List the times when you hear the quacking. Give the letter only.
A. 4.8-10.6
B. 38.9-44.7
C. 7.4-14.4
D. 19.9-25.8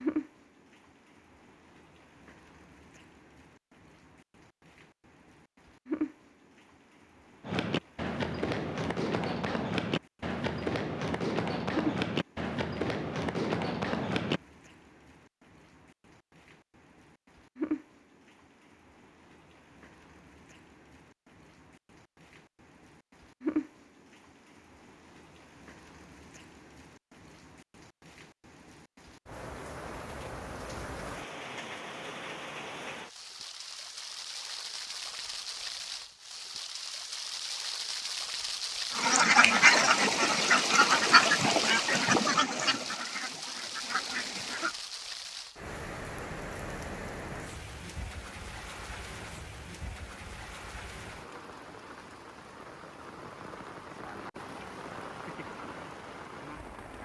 B.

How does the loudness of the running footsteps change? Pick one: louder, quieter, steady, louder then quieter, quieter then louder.
steady.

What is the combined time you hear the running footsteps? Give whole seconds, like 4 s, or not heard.
7 s.